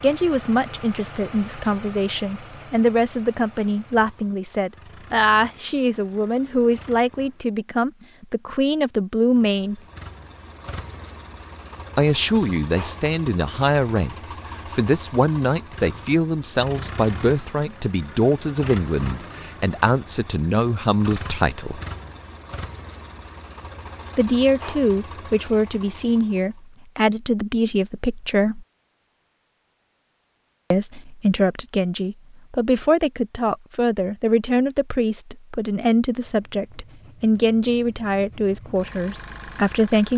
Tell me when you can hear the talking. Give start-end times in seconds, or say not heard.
0.0-9.8, 11.9-21.8, 24.1-28.6, 30.7-40.1.